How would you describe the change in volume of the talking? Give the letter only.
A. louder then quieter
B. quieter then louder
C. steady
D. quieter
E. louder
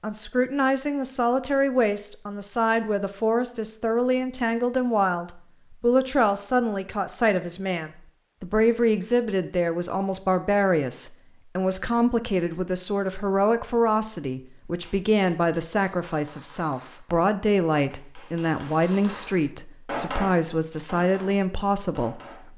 C.